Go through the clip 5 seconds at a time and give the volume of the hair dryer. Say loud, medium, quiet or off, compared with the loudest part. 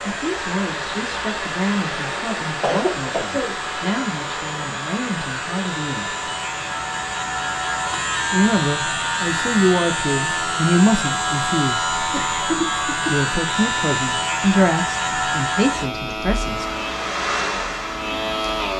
loud, medium, off, loud.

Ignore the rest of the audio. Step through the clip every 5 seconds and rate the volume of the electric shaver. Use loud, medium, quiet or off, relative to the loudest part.
medium, loud, loud, loud.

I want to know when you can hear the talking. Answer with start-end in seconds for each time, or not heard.
0.0-6.2, 8.3-11.8, 13.1-16.6.